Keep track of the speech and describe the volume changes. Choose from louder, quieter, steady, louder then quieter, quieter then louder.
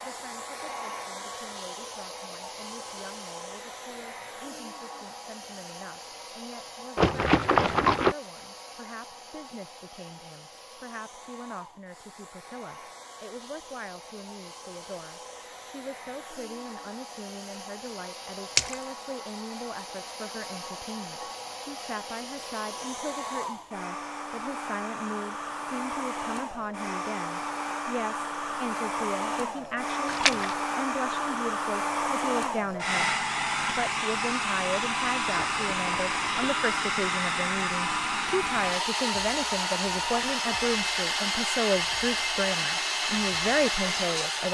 louder.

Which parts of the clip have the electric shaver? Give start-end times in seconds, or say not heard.
not heard.